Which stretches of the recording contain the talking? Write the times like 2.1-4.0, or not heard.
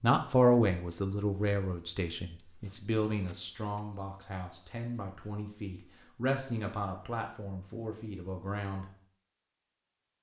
0.0-8.9.